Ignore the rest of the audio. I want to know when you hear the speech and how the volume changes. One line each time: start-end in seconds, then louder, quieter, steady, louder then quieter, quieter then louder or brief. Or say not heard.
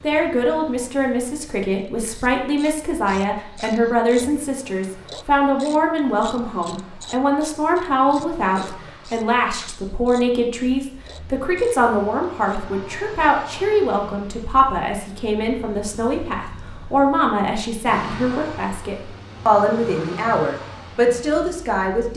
0.0-22.1 steady.